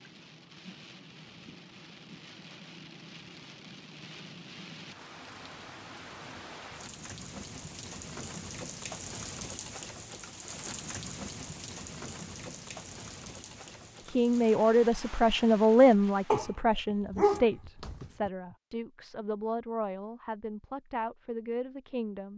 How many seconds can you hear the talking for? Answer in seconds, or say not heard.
8 s.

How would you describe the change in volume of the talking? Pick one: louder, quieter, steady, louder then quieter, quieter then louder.
quieter.